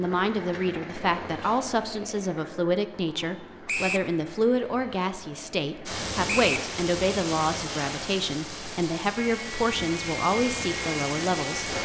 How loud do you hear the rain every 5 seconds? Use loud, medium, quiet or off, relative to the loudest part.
off, loud, loud.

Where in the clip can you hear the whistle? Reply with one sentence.
The whistle can be heard from 3.6 to 4.1 s and from 6.2 to 6.7 s.